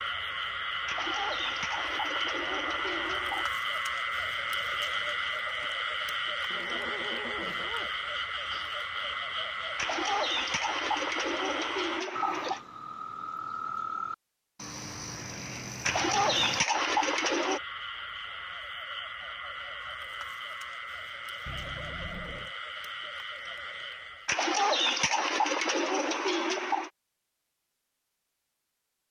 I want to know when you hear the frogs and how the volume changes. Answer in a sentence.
The frogs can be heard from 0.0 to 24.4 s, getting quieter.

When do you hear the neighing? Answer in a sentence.
You can hear the neighing from 6.5 to 8.0 s and from 21.4 to 22.6 s.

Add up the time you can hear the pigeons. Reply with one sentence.
The pigeons can be heard for 10 seconds in total.